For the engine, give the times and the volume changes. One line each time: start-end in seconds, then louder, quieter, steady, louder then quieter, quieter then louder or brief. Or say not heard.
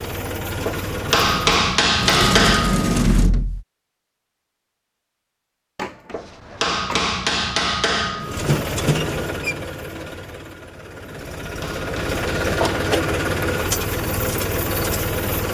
0.0-1.7 brief
8.2-15.4 quieter then louder.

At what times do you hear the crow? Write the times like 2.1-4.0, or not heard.
not heard.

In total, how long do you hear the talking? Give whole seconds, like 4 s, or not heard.
not heard.